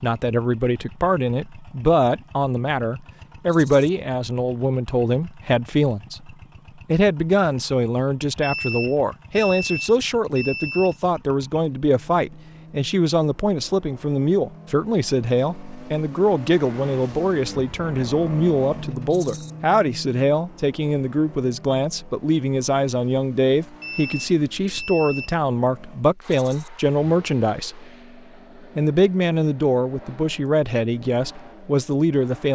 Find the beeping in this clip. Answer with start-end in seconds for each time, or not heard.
8.4-10.9, 23.8-25.4.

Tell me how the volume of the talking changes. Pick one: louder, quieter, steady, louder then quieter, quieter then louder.
steady.